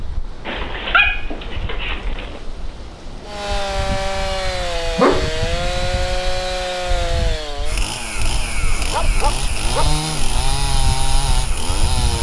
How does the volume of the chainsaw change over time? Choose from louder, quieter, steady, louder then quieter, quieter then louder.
steady.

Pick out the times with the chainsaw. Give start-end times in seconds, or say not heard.
3.2-12.1.